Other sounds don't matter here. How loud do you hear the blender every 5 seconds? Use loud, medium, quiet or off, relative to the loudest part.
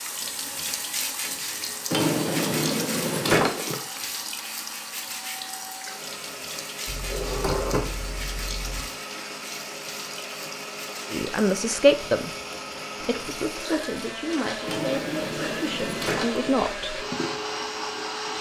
medium, medium, loud, loud.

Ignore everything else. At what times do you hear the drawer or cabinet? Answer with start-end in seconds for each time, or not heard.
1.9-3.8, 6.8-8.8, 14.7-16.5.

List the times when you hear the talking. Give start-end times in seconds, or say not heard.
11.1-12.3, 13.0-17.1.